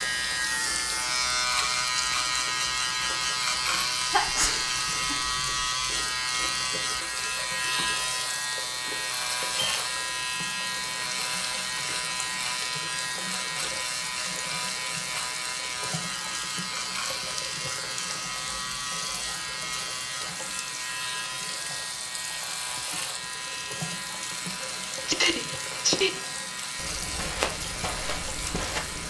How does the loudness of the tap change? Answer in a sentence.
The loudness of the tap stays about the same.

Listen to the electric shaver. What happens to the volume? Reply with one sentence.
The volume of the electric shaver goes down.